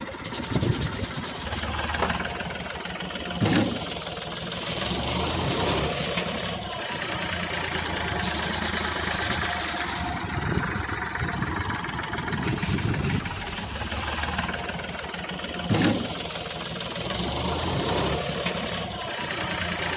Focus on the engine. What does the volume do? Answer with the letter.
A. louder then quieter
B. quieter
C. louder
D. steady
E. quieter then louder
D.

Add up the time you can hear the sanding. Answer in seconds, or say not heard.
10 s.